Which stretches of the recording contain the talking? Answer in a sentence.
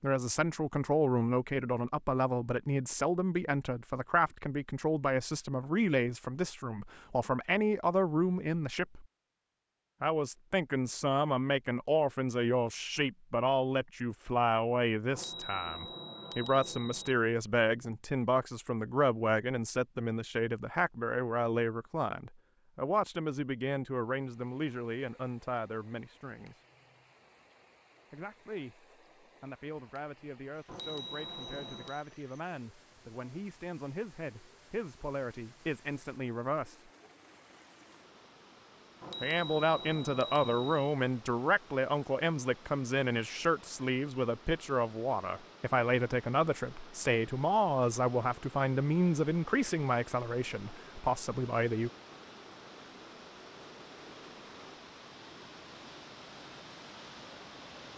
You can hear the talking from 0.0 to 9.1 s, from 10.0 to 26.6 s, from 28.1 to 36.9 s and from 39.2 to 51.9 s.